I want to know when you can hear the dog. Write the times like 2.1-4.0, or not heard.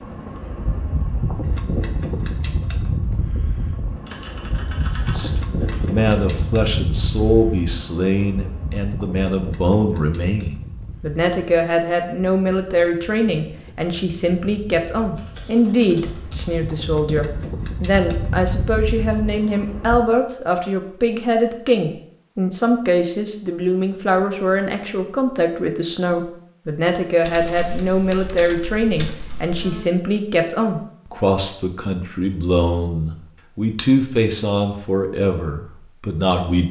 not heard.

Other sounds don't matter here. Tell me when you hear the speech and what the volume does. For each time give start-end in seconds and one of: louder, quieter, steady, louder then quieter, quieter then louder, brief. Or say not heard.
5.1-36.6 steady.